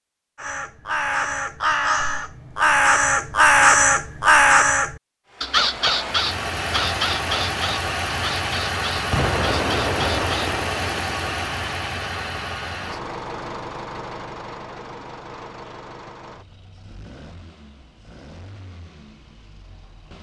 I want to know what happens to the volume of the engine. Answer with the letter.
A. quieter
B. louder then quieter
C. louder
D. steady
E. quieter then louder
A.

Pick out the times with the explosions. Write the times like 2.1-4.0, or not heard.
9.1-11.4.